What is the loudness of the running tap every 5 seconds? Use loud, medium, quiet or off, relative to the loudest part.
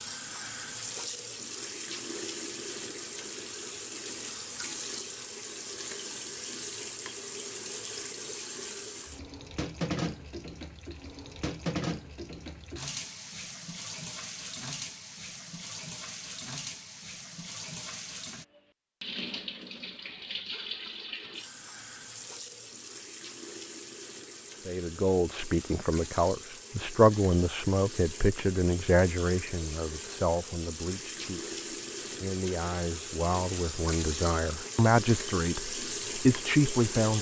loud, loud, loud, medium, medium, medium, loud, loud.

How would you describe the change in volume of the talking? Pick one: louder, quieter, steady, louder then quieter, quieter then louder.
quieter then louder.